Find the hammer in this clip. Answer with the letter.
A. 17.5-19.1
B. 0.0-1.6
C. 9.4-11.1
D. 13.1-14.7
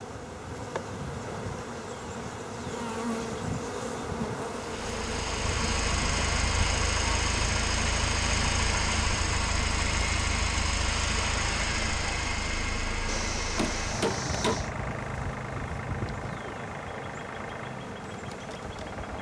D.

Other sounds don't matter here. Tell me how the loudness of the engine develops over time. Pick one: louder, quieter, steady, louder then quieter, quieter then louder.
quieter.